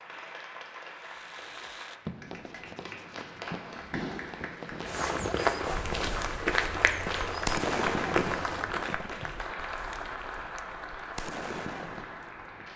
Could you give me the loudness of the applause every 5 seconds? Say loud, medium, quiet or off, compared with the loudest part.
medium, loud, medium.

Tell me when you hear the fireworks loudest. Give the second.
8 s.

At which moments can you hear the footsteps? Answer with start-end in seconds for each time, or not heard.
4.8-8.9.